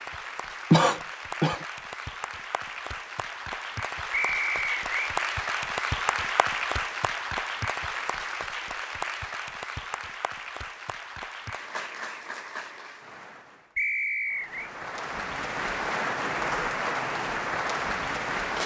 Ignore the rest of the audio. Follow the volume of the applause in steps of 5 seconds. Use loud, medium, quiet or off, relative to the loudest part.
medium, loud, medium, loud.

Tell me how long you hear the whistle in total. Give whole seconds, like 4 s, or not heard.
2 s.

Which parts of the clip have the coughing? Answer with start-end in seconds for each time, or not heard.
0.7-1.6.